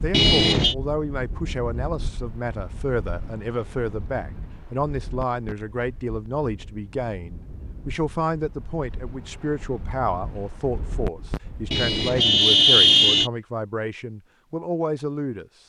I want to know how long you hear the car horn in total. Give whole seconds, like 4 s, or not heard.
2 s.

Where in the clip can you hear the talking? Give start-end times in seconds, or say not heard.
0.0-15.4.